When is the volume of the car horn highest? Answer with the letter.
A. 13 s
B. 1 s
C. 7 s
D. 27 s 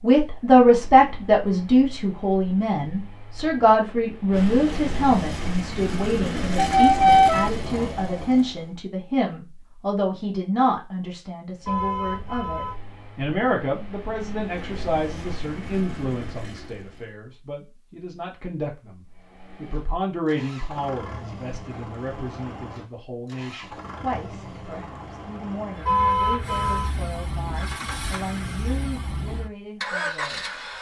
C.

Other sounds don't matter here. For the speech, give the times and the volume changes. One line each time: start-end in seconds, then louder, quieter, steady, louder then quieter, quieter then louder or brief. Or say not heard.
0.0-30.5 quieter.